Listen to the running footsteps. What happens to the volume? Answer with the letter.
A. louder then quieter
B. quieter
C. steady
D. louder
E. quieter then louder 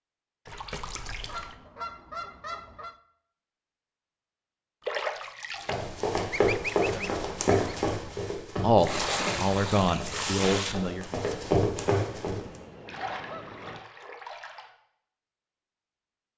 E.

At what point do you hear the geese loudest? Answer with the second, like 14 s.
7 s.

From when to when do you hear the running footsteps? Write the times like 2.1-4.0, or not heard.
5.6-12.4.